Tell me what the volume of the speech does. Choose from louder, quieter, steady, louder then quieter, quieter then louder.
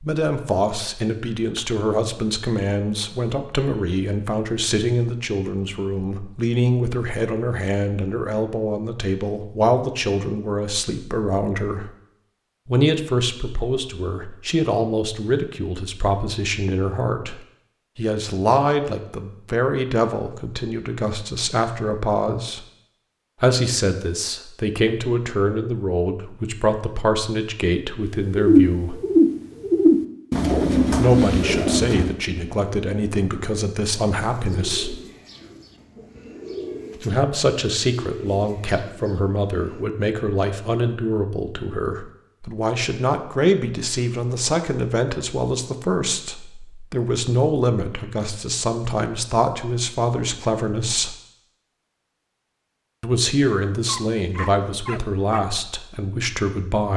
steady.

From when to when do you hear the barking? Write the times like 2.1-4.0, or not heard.
53.9-55.4.